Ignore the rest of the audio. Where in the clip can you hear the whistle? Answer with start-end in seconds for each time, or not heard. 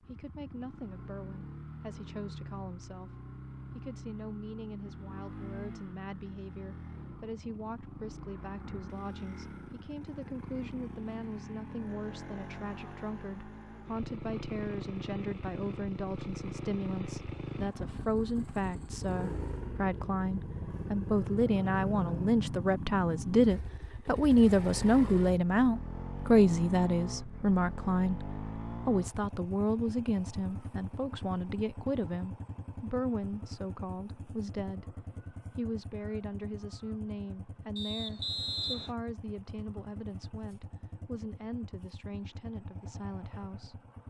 37.8-39.0.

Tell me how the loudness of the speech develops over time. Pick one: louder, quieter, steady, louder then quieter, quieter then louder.
louder then quieter.